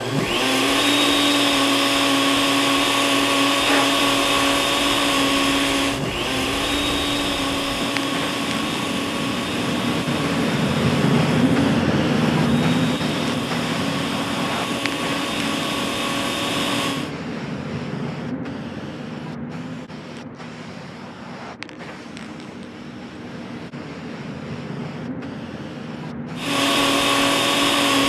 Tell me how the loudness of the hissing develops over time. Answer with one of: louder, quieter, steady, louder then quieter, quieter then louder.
louder then quieter.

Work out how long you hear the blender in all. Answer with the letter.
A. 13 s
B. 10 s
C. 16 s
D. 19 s
D.